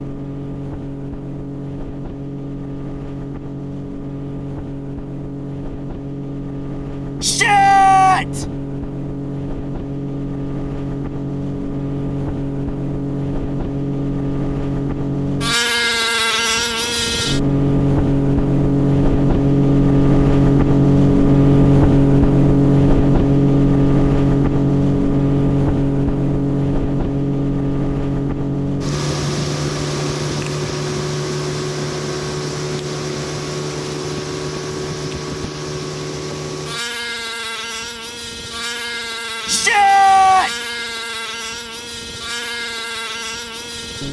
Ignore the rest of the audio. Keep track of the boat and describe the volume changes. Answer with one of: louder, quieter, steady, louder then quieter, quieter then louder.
louder then quieter.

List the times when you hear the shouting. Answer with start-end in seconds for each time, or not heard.
7.2-8.4, 39.5-40.5.